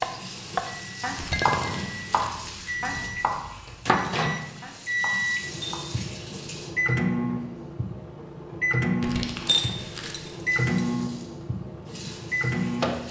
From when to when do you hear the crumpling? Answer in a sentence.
You can hear the crumpling from 1.1 to 2.5 s and from 9.0 to 10.2 s.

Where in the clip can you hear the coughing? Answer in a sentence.
You can't hear the coughing here.